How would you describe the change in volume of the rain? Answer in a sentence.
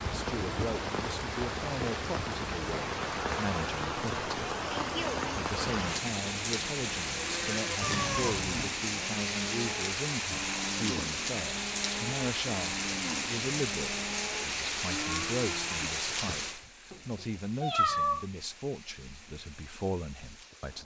The loudness of the rain goes down.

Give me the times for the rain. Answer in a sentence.
The rain can be heard from 0.0 to 20.7 s.